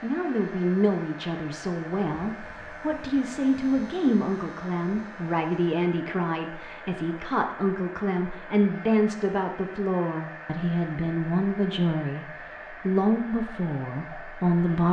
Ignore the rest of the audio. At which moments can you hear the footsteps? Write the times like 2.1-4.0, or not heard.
not heard.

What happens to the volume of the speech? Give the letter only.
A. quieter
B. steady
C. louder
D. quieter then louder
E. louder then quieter
B.